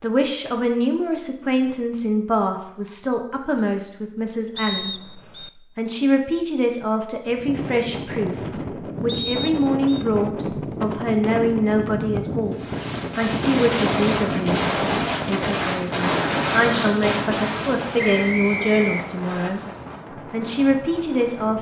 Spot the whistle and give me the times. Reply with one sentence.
You can hear the whistle from 4.5 to 5.5 s, from 9.1 to 10.1 s and from 17.9 to 19.5 s.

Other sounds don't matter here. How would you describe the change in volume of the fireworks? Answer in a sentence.
The loudness of the fireworks goes down.